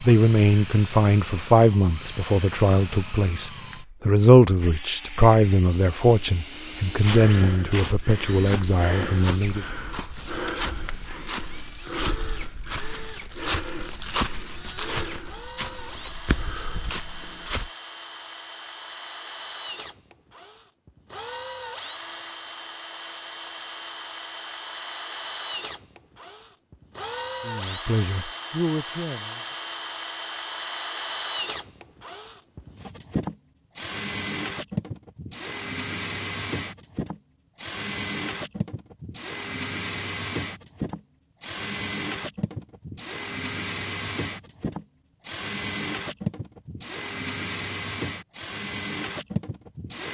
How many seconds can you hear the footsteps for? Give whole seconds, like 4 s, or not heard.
11 s.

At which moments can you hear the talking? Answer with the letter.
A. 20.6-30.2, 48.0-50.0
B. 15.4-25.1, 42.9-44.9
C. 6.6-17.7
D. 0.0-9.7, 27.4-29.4
D.